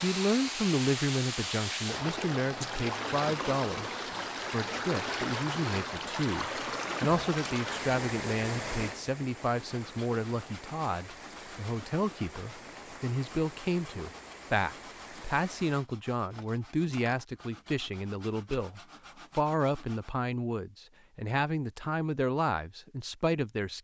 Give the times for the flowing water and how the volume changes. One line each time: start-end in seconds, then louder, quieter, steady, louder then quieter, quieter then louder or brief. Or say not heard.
0.0-15.8 quieter.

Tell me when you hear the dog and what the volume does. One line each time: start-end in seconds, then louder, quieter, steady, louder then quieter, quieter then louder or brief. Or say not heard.
not heard.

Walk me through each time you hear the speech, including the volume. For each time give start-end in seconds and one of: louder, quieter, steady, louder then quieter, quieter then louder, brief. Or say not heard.
0.0-23.7 steady.